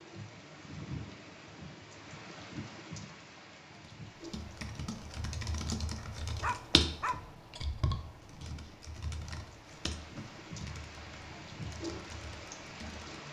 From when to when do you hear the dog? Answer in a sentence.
You can hear the dog from 6.0 to 7.2 s.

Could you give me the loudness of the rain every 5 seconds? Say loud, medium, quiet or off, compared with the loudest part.
loud, medium, loud.